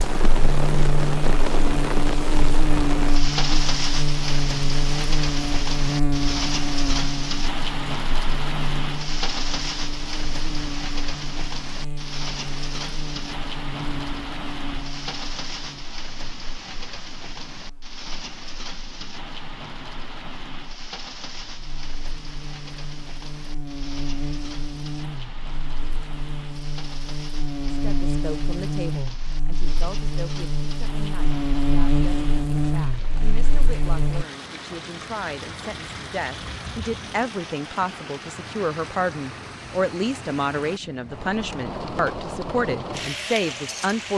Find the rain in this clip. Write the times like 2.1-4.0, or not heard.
0.0-44.1.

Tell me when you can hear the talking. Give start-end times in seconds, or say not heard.
27.7-44.1.